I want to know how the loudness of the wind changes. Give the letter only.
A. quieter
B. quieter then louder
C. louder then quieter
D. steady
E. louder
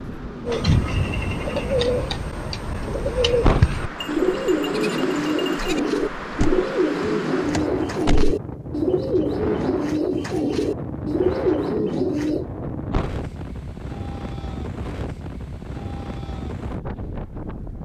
D.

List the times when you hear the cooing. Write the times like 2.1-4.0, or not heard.
0.5-12.4.